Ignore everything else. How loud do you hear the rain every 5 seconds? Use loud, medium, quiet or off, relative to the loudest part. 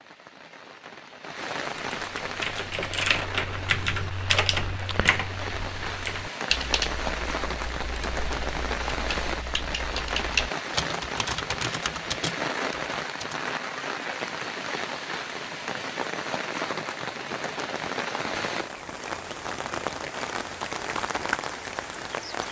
medium, loud, loud, loud, loud.